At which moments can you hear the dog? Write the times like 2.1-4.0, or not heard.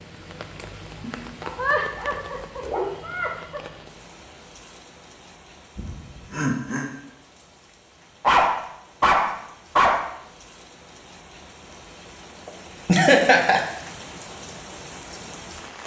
1.0-2.9, 8.2-10.1.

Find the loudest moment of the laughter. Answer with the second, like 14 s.
13 s.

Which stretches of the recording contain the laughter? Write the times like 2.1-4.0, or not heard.
1.6-3.6, 5.8-6.9, 12.4-13.6.